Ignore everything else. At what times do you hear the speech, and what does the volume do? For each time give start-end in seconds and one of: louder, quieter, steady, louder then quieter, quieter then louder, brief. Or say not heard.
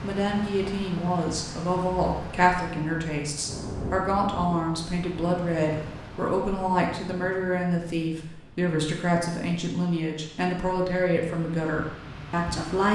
0.0-12.9 steady.